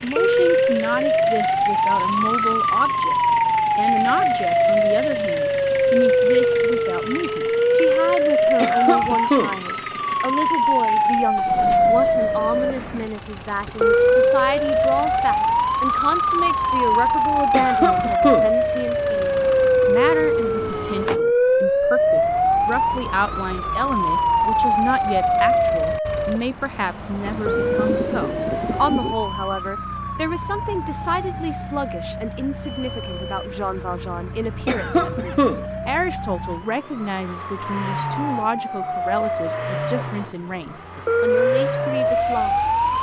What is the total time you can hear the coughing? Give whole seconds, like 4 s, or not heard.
3 s.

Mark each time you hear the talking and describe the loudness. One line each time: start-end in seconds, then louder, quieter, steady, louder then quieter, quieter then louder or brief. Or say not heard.
0.0-42.7 steady.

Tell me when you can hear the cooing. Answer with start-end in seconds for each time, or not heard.
27.2-29.1.